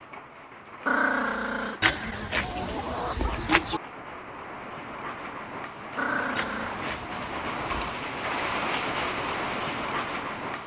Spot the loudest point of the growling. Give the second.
1 s.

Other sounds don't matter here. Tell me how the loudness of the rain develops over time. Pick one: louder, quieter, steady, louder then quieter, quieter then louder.
louder.